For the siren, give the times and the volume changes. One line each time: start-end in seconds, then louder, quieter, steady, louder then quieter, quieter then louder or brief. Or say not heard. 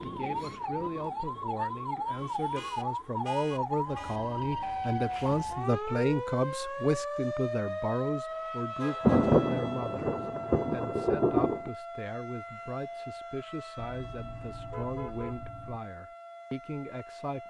0.0-17.4 quieter.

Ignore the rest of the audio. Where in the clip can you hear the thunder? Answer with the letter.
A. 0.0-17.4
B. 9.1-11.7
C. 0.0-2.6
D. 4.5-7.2
B.